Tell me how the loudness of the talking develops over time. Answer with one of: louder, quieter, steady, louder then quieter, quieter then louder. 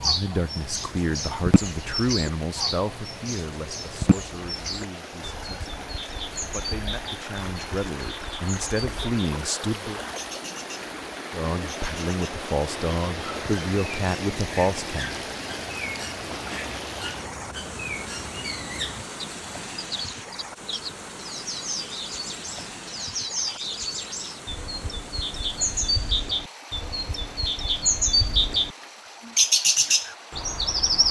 quieter then louder.